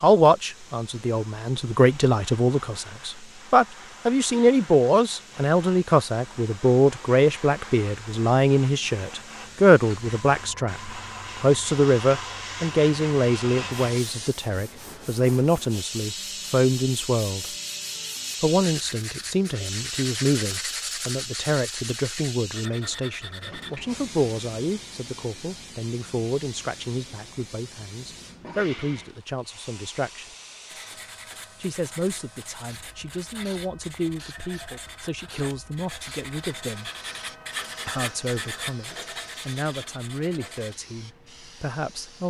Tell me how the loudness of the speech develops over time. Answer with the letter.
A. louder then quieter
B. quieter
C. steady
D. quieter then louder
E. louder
B.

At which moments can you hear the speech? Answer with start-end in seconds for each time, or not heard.
0.0-17.4, 18.4-30.2, 31.6-36.9, 37.9-42.2.